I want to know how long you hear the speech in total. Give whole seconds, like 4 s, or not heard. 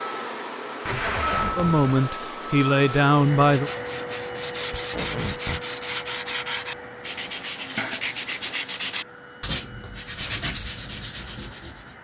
2 s.